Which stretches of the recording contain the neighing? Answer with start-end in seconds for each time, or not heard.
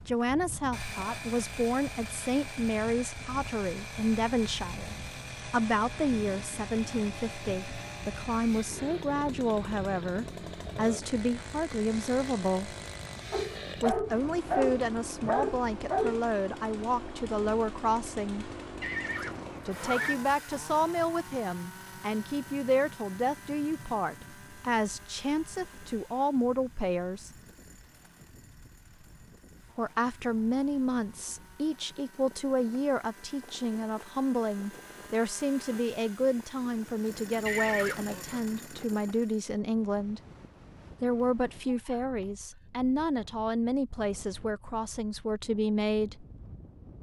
18.8-20.1, 37.5-38.4.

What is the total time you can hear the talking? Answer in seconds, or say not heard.
41 s.